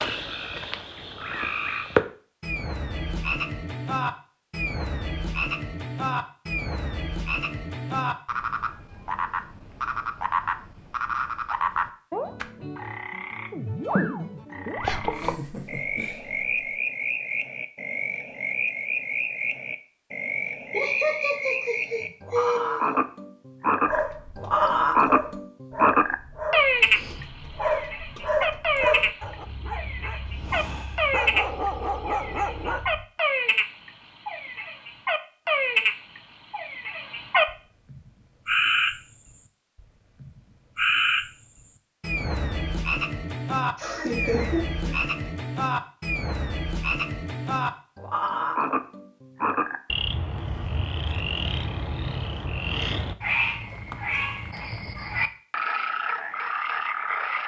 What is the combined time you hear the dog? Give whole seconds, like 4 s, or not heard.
9 s.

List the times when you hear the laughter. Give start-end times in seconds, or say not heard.
15.0-16.8, 20.7-22.9, 43.8-45.3.